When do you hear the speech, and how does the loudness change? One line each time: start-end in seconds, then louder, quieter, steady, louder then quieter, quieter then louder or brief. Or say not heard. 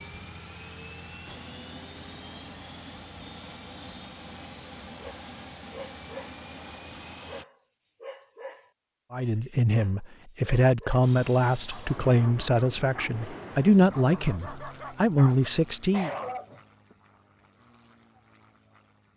9.1-16.1 steady.